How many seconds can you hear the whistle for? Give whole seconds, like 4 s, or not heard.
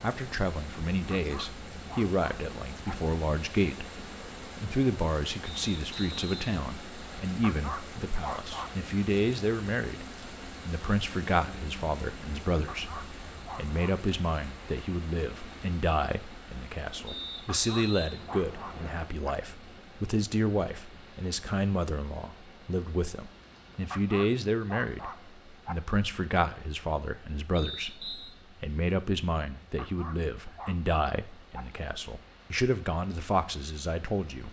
4 s.